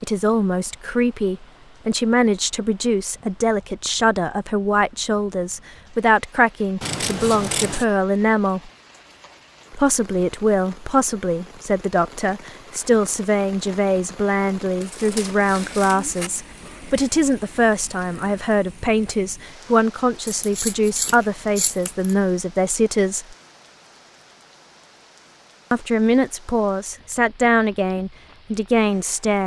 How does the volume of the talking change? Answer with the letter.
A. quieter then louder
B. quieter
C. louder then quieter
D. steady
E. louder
D.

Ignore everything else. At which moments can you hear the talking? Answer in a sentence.
You can hear the talking from 0.0 to 8.7 s, from 9.7 to 23.4 s and from 25.7 to 29.4 s.